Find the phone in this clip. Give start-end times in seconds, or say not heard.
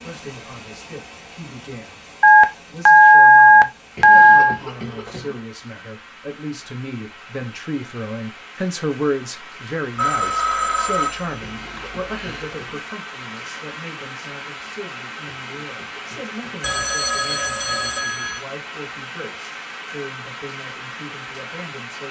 2.2-4.5, 9.9-12.4, 16.6-18.4.